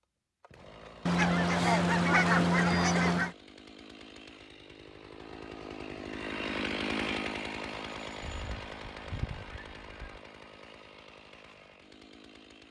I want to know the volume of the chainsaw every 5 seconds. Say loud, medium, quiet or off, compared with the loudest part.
quiet, loud, quiet.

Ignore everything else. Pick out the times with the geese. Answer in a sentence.
The geese can be heard from 1.1 to 3.4 s and from 8.2 to 10.2 s.